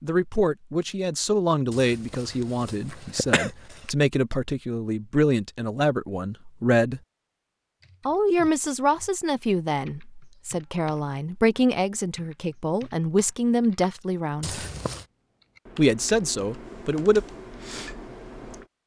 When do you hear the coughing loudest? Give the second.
3 s.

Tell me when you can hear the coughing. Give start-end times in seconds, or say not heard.
1.7-3.9, 14.4-15.1.